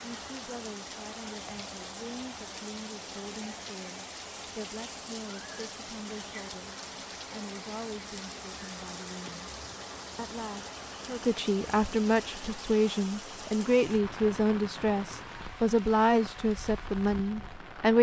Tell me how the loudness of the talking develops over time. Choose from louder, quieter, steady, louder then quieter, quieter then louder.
louder.